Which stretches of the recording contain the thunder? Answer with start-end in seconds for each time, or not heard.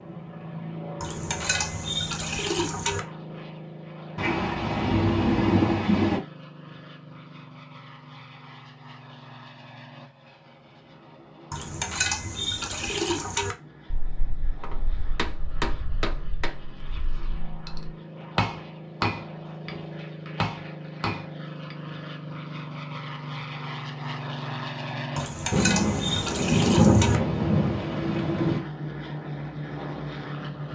4.2-6.2, 25.5-28.6.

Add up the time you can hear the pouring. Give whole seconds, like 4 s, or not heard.
6 s.